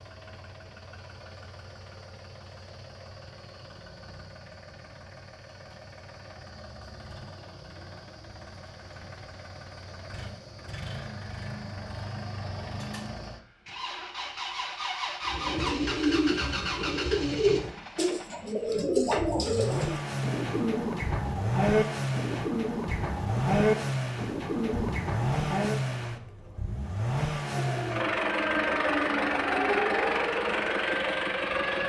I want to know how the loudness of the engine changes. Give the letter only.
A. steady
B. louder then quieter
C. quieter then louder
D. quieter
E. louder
E.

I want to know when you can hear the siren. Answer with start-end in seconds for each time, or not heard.
27.5-31.8.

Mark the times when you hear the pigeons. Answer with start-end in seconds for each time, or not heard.
15.2-25.8.